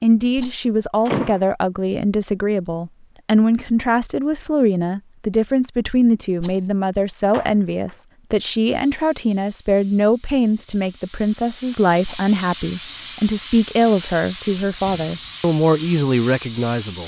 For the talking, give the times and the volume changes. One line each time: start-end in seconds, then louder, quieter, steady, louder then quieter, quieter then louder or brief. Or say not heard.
0.0-17.0 steady.